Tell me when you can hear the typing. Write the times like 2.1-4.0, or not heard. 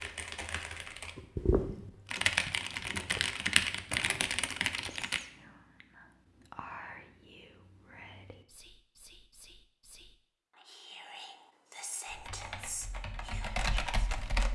0.0-5.2, 12.1-14.5.